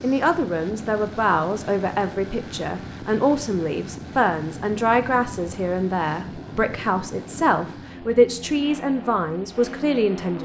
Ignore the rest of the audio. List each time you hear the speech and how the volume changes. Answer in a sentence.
The speech can be heard from 0.0 to 10.3 s, at a steady volume.